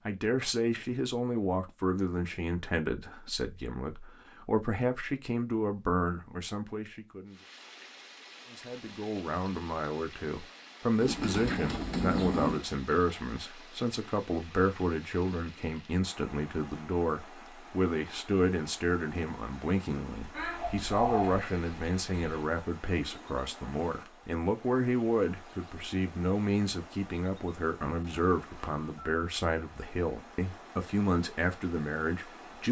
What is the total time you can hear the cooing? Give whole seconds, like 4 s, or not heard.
4 s.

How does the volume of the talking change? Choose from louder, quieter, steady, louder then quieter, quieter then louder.
steady.